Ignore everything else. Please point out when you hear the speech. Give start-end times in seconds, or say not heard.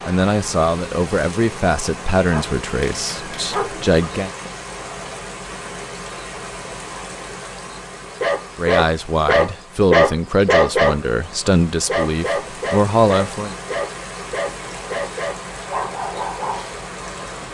0.1-4.3, 8.6-13.6.